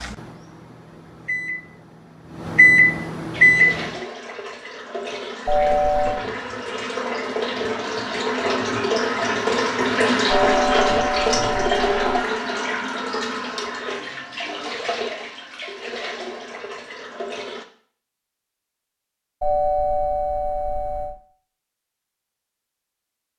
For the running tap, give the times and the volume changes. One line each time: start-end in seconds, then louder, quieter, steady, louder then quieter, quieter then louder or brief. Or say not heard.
3.3-17.6 louder then quieter.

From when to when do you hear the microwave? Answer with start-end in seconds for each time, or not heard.
0.0-3.9.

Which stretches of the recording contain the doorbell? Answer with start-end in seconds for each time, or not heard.
5.5-6.2, 10.2-12.2, 19.4-21.1.